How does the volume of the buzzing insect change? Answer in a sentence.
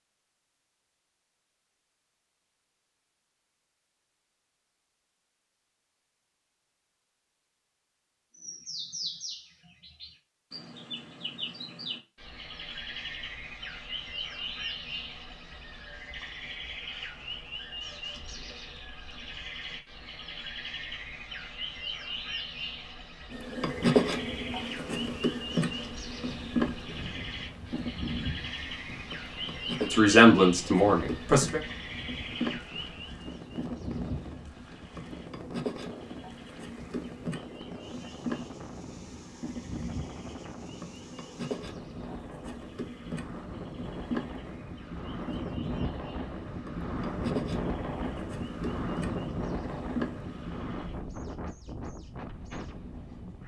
The loudness of the buzzing insect goes down.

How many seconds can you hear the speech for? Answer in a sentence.
The speech can be heard for 2 seconds in total.